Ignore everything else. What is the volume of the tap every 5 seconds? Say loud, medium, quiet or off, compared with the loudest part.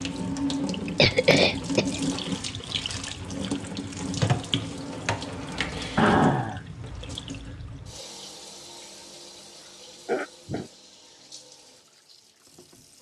loud, medium, quiet.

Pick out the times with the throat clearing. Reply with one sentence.
The throat clearing can be heard from 0.8 to 1.9 s, from 6.0 to 6.8 s and from 9.6 to 10.7 s.